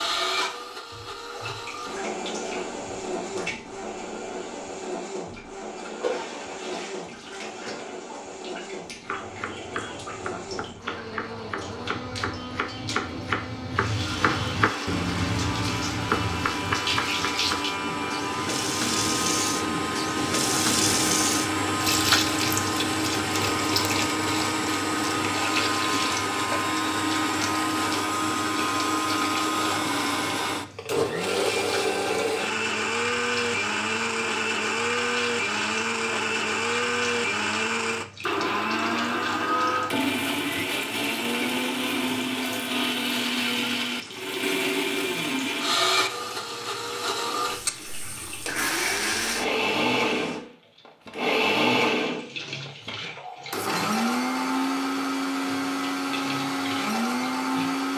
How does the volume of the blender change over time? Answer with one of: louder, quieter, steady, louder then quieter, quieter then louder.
louder.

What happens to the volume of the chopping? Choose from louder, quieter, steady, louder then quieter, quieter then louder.
louder.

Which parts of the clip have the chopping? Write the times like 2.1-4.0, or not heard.
9.0-17.7.